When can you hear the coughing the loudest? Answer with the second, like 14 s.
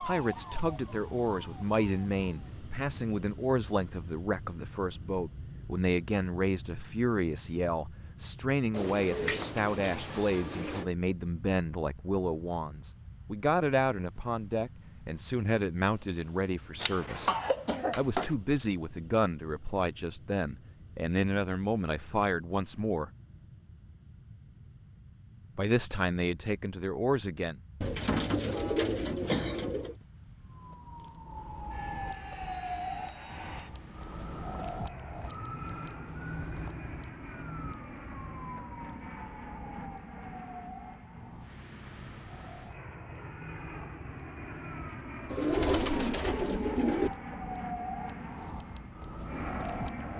17 s.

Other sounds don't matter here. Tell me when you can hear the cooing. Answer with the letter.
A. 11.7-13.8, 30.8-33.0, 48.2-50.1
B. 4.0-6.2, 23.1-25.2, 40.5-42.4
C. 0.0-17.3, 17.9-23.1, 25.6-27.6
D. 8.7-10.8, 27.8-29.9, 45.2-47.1
D.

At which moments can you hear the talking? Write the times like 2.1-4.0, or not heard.
0.0-17.3, 17.9-23.1, 25.6-27.6.